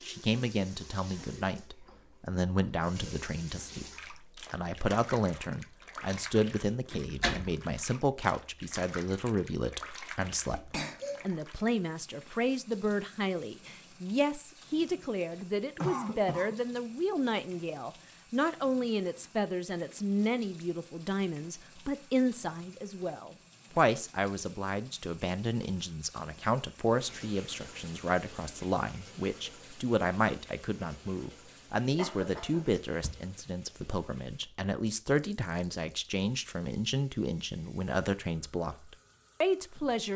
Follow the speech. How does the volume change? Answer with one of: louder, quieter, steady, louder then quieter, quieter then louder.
steady.